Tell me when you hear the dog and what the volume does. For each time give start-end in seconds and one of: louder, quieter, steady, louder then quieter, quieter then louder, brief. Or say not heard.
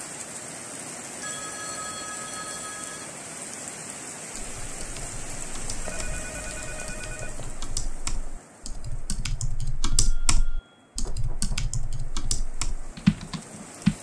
not heard.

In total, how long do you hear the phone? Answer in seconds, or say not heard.
5 s.